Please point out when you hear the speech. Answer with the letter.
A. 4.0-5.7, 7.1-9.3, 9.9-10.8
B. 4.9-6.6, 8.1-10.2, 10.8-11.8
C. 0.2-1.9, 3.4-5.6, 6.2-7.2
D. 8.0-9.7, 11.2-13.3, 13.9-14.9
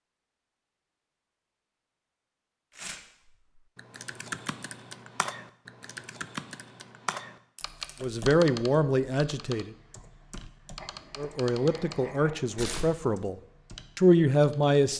D.